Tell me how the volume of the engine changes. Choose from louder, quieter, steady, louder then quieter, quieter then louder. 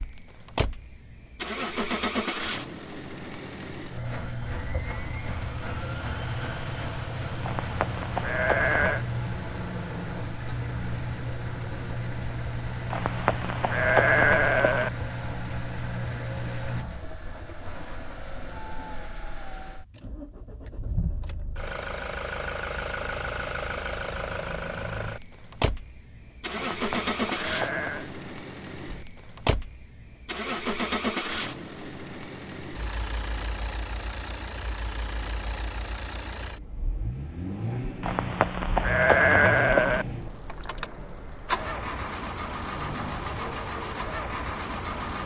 steady.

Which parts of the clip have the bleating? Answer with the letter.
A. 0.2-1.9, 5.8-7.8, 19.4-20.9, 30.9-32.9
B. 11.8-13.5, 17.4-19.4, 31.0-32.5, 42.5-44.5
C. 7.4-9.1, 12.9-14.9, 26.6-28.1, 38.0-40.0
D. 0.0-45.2
C.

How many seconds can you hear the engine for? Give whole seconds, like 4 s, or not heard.
45 s.